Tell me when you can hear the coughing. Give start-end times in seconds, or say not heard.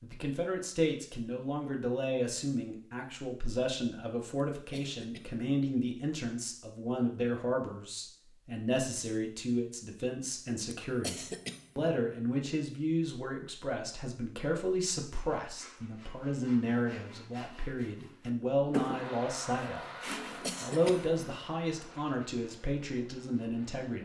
4.5-5.4, 10.7-11.9, 20.1-21.1.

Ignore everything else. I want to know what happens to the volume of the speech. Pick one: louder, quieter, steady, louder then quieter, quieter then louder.
steady.